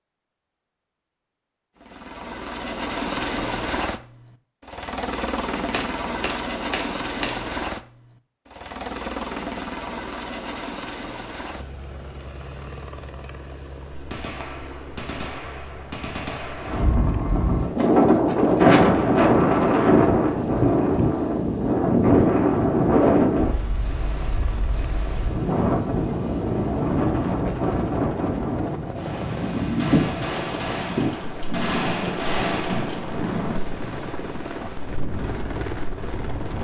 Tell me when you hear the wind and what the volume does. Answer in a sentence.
You can hear the wind from 16.6 to 36.5 s, getting quieter.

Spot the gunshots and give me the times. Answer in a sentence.
You can hear the gunshots from 5.7 to 7.3 s, from 13.9 to 16.9 s and from 29.8 to 33.0 s.